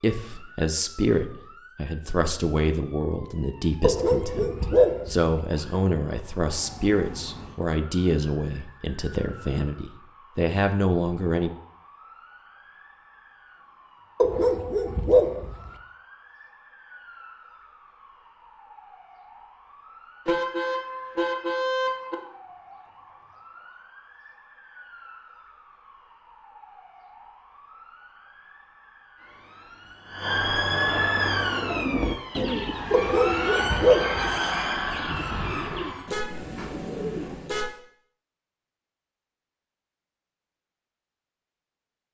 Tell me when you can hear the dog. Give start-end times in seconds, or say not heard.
3.8-5.3, 14.2-15.7, 32.9-34.3.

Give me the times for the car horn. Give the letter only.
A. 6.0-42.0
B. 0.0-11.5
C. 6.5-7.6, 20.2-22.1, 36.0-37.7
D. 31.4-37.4
C.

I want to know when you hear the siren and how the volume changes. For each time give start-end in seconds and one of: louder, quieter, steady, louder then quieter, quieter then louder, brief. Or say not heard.
0.0-36.1 louder.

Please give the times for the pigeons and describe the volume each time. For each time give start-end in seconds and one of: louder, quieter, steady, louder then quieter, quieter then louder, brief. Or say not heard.
31.4-37.4 quieter.